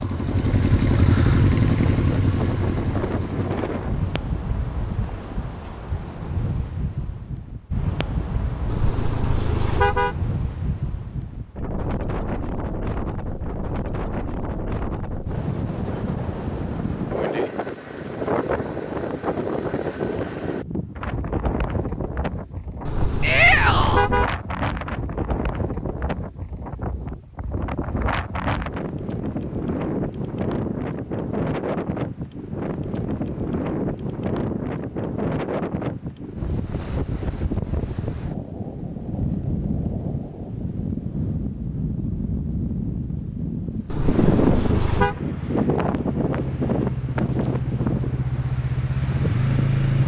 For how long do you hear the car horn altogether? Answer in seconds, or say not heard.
4 s.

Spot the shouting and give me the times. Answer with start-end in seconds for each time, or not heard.
23.2-24.1.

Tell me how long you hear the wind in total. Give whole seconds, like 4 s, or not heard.
50 s.